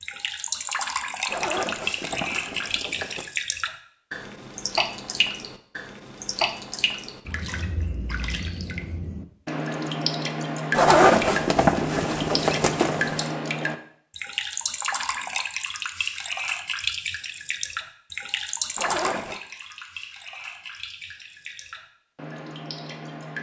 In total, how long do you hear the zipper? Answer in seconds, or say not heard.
5 s.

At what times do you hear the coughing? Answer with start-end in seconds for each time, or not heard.
not heard.